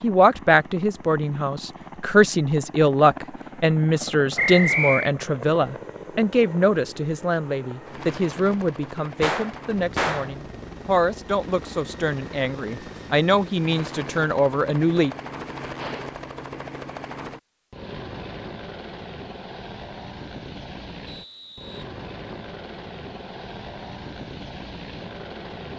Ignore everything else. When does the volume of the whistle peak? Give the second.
5 s.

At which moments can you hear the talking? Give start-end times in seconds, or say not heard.
0.0-15.2.